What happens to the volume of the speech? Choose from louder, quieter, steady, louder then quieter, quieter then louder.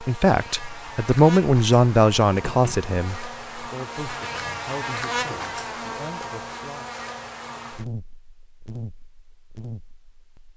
quieter.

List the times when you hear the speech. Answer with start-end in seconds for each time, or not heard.
0.0-7.0.